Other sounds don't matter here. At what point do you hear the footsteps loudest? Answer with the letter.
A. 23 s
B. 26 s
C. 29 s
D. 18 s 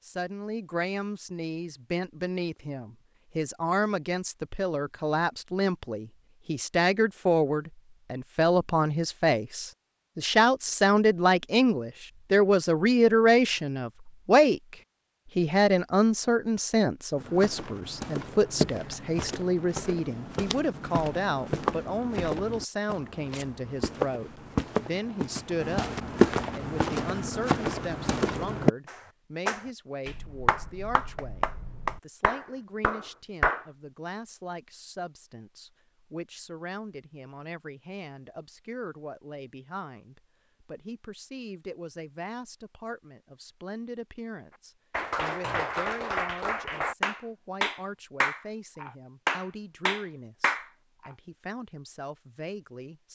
B.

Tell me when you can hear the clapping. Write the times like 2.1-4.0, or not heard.
28.9-33.6, 44.9-51.1.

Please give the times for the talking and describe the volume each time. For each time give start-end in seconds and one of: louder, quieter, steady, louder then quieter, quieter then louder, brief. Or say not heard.
0.1-14.8 louder
15.3-53.0 quieter.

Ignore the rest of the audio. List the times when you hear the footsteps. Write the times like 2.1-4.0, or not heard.
17.1-28.7.